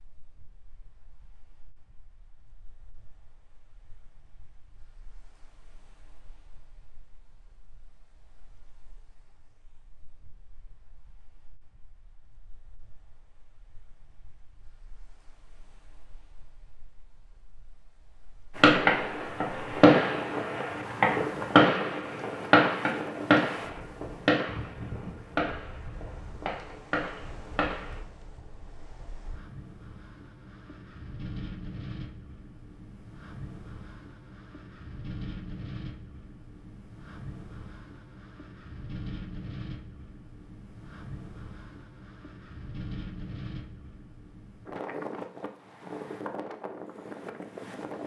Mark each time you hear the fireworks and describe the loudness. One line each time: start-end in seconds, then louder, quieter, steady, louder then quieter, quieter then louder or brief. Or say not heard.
18.6-28.0 quieter.